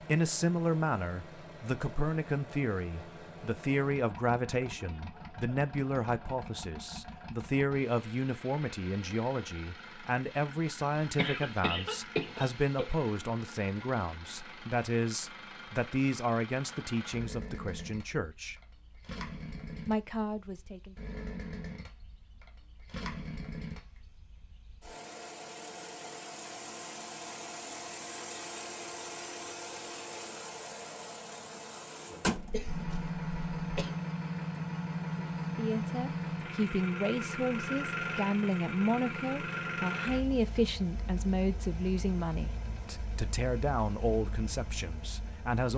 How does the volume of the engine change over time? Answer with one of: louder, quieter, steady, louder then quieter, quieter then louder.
louder.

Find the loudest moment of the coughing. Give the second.
12 s.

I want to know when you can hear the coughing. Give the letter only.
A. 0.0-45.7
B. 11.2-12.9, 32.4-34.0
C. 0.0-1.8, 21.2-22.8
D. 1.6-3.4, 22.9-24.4
B.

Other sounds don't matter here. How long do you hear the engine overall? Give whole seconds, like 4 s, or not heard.
46 s.